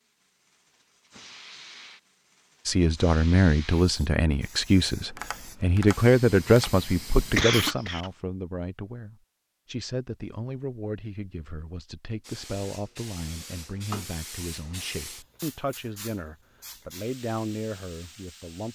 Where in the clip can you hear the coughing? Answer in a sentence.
You can hear the coughing from 7.3 to 8.1 s.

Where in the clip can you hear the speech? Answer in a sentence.
You can hear the speech from 2.6 to 18.7 s.